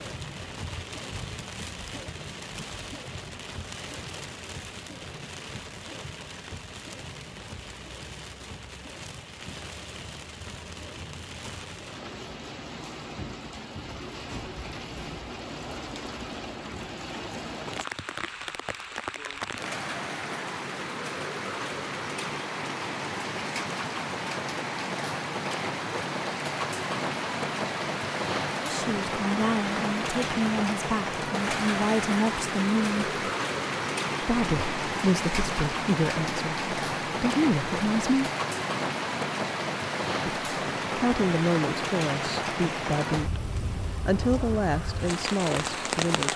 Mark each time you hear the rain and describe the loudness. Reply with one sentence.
The rain can be heard from 0.0 to 46.3 s, getting louder.